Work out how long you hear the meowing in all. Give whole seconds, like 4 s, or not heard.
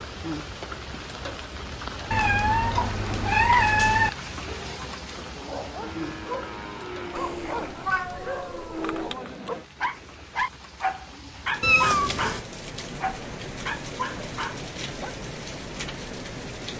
5 s.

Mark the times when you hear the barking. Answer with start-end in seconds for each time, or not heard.
5.3-15.2.